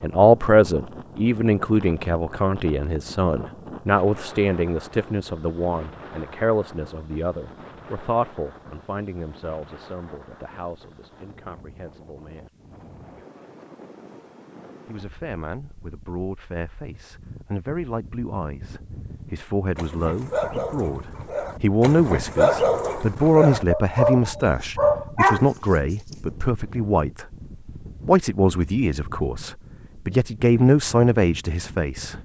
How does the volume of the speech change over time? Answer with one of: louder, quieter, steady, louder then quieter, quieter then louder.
quieter then louder.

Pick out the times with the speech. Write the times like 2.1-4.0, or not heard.
0.0-12.5, 14.8-27.4, 28.1-32.2.